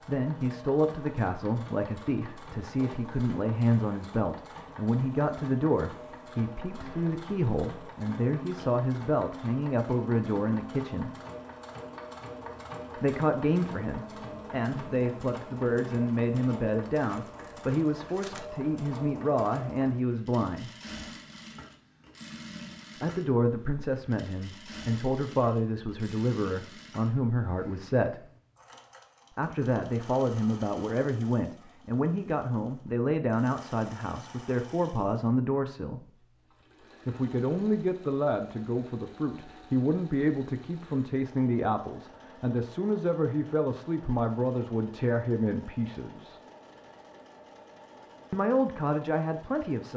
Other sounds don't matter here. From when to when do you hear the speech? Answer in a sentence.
You can hear the speech from 0.1 to 11.2 s, from 12.9 to 20.7 s, from 22.9 to 28.2 s, from 29.3 to 36.0 s, from 37.0 to 46.4 s and from 48.3 to 49.9 s.